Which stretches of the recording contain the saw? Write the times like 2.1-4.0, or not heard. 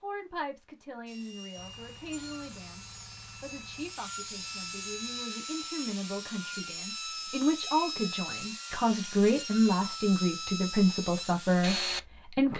1.1-12.0.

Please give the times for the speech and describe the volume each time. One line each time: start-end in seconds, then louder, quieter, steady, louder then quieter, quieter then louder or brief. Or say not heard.
0.0-12.5 louder.